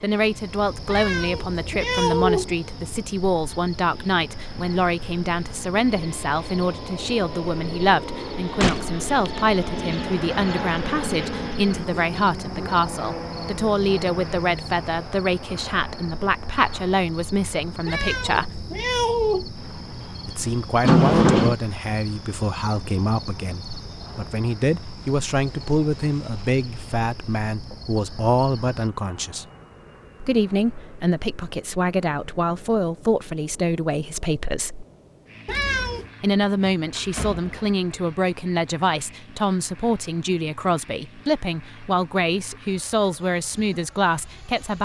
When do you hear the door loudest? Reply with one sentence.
The volume of the door peaks at 21 seconds.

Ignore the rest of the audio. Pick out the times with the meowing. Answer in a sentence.
The meowing can be heard from 0.8 to 2.5 s, from 17.9 to 19.5 s and from 35.5 to 36.1 s.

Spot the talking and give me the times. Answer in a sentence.
You can hear the talking from 0.0 to 18.6 s, from 20.2 to 29.4 s, from 30.2 to 34.9 s and from 36.2 to 44.8 s.